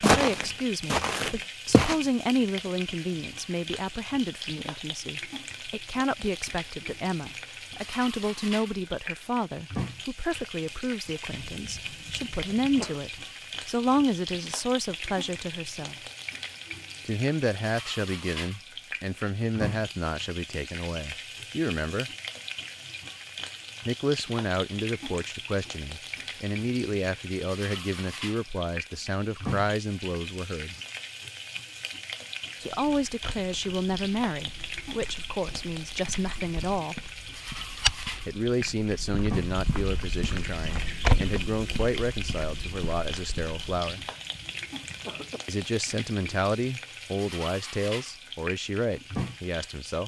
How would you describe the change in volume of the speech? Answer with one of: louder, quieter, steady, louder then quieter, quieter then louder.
steady.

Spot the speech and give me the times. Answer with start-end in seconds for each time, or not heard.
0.0-16.0, 17.1-22.1, 23.9-30.8, 32.6-37.1, 38.2-44.0, 45.5-50.0.